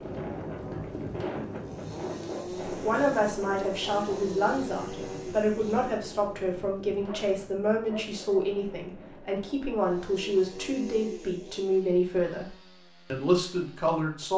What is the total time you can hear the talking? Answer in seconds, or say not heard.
11 s.